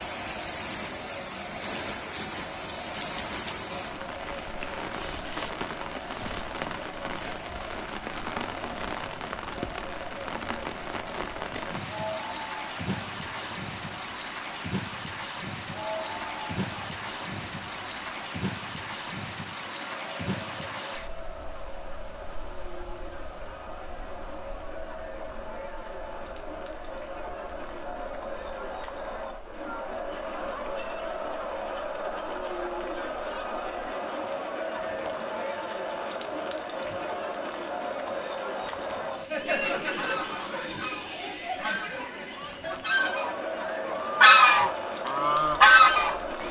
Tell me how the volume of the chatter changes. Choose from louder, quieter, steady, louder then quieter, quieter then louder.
louder.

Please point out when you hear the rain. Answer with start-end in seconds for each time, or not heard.
0.0-46.1.